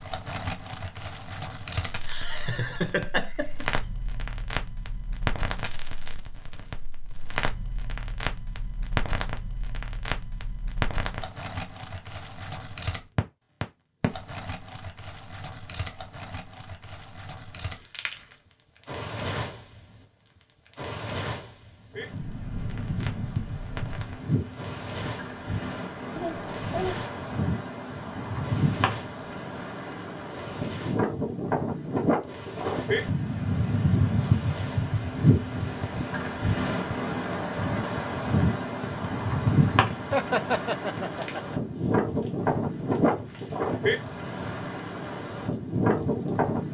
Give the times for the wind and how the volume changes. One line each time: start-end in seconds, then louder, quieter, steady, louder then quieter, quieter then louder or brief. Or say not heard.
21.9-46.6 louder.